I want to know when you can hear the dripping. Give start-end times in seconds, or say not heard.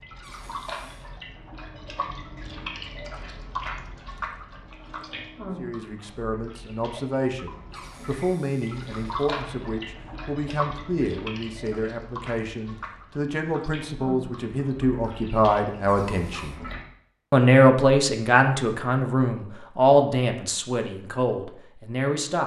0.0-16.9.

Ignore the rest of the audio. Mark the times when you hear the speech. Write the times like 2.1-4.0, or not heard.
5.5-16.6, 17.3-22.4.